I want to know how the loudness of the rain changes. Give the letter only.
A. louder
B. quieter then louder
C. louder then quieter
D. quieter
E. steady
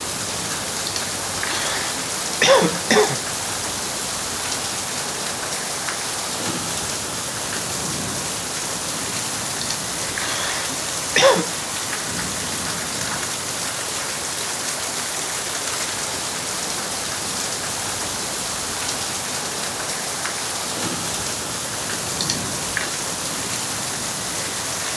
E.